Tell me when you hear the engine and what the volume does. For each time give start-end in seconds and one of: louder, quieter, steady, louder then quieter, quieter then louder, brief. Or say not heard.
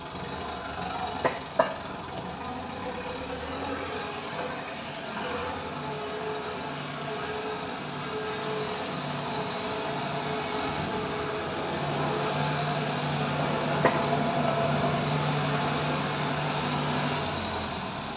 0.0-18.1 louder.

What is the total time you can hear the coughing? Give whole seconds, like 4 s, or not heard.
2 s.